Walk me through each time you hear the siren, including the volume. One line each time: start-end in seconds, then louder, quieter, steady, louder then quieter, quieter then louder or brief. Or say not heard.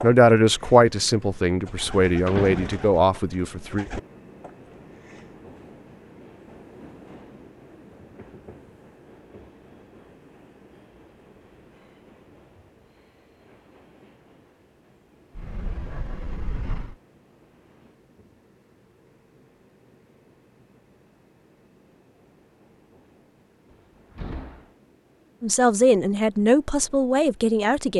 not heard.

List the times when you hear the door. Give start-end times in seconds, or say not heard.
2.2-2.9, 15.3-16.9, 23.7-24.7.